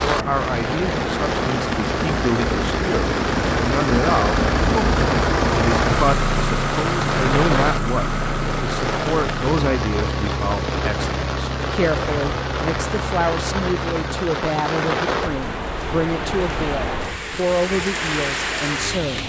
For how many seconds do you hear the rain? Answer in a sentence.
You can hear the rain for 19 seconds altogether.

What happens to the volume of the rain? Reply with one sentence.
The volume of the rain stays about the same.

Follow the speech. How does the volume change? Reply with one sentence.
The loudness of the speech stays about the same.